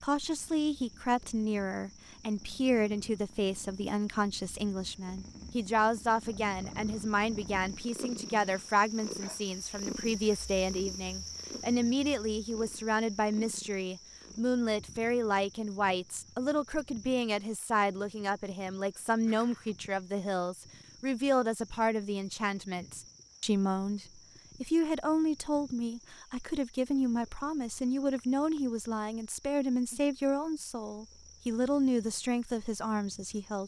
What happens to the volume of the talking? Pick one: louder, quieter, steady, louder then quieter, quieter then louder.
steady.